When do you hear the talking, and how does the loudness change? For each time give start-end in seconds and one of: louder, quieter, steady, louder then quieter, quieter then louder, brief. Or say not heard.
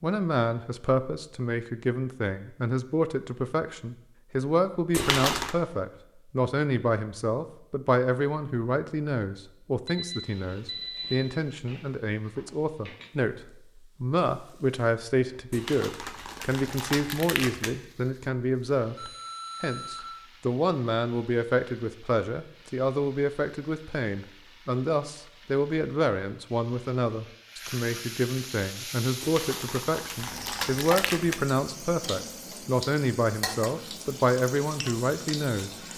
0.0-35.8 steady.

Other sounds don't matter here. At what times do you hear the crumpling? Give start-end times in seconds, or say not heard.
4.9-5.5, 15.5-17.8, 29.2-31.4.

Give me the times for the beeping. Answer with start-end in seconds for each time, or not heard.
9.8-11.2, 18.9-20.1.